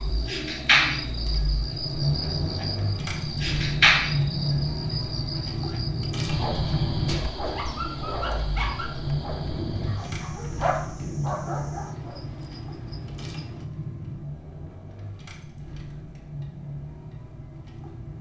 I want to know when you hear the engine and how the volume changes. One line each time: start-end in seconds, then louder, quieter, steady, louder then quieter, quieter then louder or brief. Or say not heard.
0.0-18.1 quieter.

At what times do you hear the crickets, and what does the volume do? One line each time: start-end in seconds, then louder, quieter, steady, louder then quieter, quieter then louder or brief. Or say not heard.
0.0-13.7 quieter.